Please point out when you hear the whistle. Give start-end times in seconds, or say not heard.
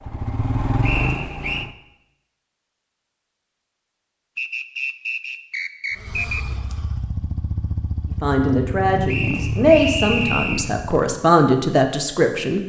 0.8-1.7, 4.3-6.5, 9.1-10.7.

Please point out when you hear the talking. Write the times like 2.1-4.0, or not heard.
8.2-12.6.